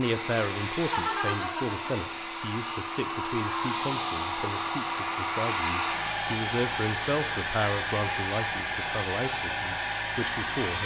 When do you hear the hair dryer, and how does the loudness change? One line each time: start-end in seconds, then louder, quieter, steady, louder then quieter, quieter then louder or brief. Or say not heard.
0.0-10.8 steady.